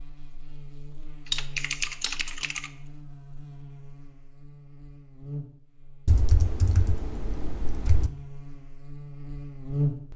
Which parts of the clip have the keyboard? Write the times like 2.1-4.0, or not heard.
1.3-2.7, 6.0-8.1.